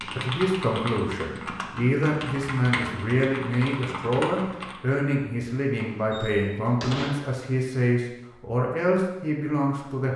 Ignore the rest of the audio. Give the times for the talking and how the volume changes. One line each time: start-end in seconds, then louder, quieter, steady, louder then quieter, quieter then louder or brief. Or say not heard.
0.0-10.1 steady.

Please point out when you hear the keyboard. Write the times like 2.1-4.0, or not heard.
0.0-4.8.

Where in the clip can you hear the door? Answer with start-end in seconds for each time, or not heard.
5.9-7.3.